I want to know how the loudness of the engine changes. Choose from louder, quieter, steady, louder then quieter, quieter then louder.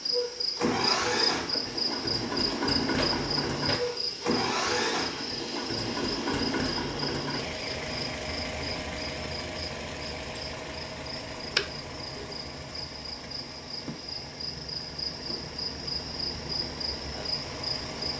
quieter.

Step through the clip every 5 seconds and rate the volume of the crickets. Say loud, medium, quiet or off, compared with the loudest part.
loud, medium, medium, loud.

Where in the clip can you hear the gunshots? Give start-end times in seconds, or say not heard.
2.4-4.2.